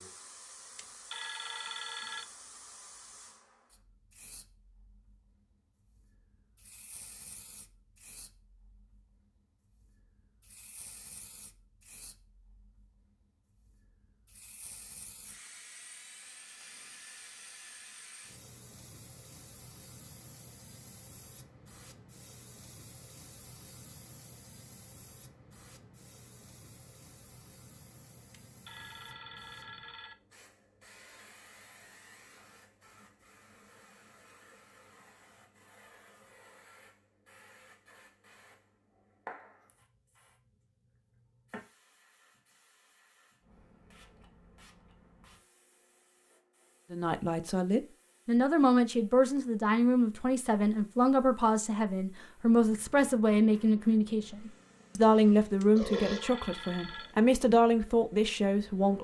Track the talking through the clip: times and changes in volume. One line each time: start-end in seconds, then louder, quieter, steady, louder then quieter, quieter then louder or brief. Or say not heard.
46.9-59.0 steady.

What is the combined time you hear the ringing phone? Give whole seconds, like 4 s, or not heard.
5 s.